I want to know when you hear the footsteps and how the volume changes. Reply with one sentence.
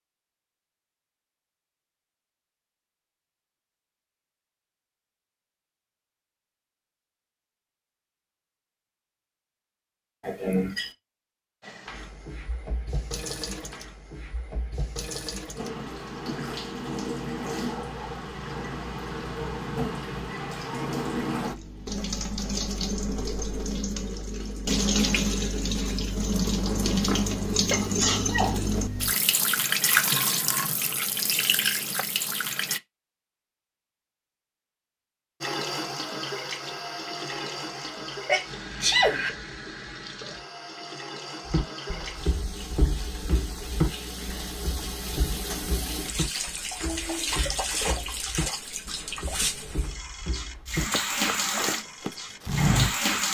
The footsteps can be heard from 41.5 to 53.1 s, getting quieter then louder.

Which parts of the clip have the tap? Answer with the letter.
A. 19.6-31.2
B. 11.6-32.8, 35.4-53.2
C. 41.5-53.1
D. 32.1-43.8
B.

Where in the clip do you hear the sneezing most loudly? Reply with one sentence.
The loudest moment of the sneezing is at 39 seconds.